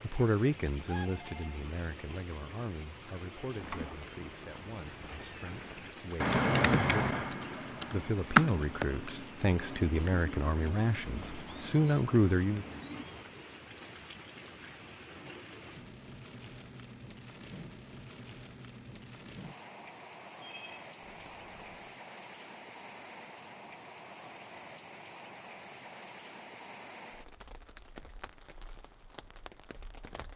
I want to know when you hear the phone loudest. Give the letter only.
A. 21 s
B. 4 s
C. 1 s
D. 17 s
C.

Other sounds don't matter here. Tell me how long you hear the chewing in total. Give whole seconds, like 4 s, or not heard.
not heard.